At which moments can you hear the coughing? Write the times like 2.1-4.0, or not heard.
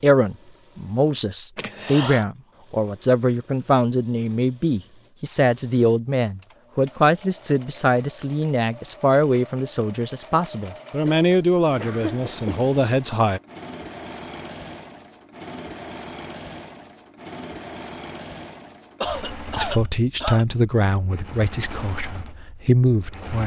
1.6-2.2, 11.1-12.7, 19.0-20.4.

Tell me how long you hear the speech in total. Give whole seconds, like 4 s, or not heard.
17 s.